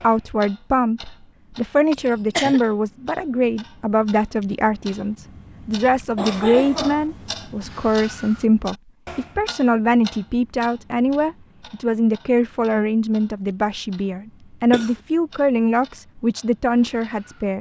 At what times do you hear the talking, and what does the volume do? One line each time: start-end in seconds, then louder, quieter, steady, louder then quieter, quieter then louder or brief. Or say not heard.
0.0-17.5 steady.